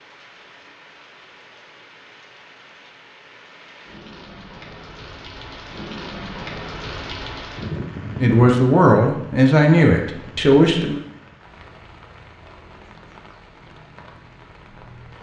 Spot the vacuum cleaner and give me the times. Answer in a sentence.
You can't hear the vacuum cleaner here.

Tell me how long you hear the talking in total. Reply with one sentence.
You can hear the talking for 3 seconds altogether.